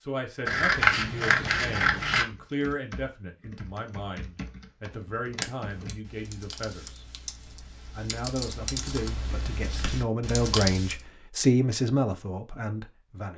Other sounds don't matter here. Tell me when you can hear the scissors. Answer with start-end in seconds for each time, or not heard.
0.5-2.2, 5.4-6.0, 9.7-10.1.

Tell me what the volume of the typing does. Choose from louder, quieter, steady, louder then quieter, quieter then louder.
louder.